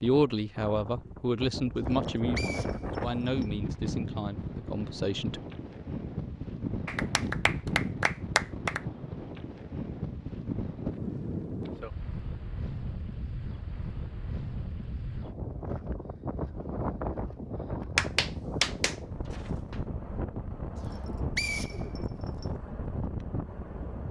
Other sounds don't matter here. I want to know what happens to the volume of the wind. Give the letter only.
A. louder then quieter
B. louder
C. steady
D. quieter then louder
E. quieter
C.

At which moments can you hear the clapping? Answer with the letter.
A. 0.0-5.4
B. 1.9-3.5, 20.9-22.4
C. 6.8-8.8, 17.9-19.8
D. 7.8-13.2
C.